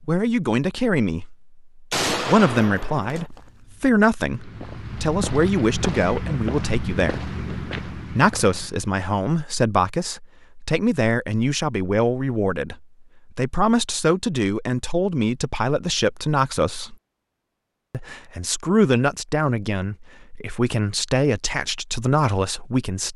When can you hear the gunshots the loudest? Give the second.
2 s.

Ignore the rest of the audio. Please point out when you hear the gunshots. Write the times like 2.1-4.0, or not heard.
1.9-3.3.